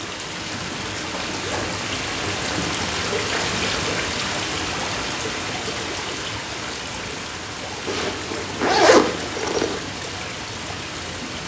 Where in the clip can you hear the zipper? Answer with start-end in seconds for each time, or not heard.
1.2-2.8, 7.8-9.8.